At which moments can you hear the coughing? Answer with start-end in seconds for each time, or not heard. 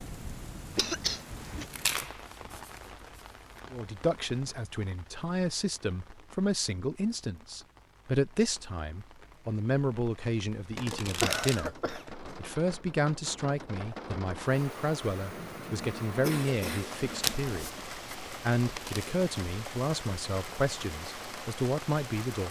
0.8-1.6, 10.9-12.1, 15.8-17.8.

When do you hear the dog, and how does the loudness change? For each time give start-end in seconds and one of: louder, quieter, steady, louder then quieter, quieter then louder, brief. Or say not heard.
not heard.